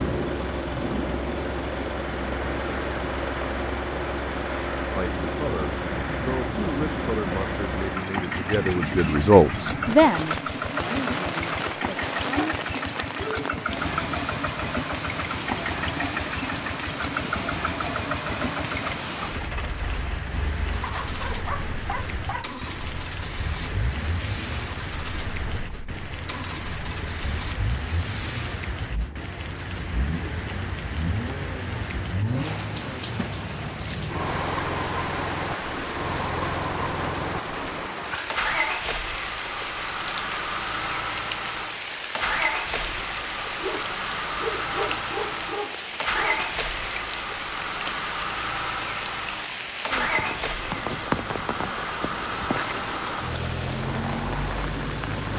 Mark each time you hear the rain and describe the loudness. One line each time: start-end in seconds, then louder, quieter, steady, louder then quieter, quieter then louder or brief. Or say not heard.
0.0-55.3 steady.